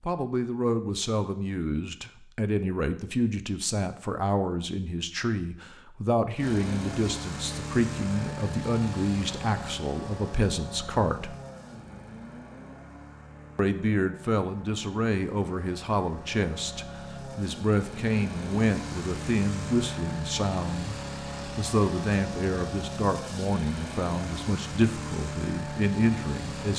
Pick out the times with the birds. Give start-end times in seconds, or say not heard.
not heard.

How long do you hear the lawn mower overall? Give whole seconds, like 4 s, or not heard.
20 s.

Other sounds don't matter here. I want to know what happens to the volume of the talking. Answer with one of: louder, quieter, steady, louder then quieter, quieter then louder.
steady.